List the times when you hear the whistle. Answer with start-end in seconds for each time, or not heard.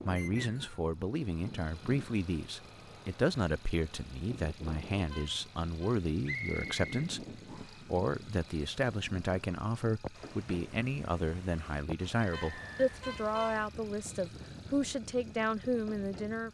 0.1-0.8, 6.2-7.8, 12.3-13.0.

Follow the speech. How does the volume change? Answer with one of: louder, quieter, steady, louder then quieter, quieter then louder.
steady.